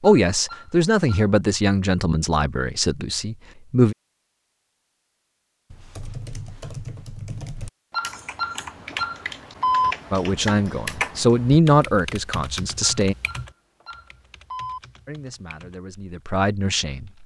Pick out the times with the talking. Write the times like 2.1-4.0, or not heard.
0.0-4.0, 10.1-13.2, 15.1-17.2.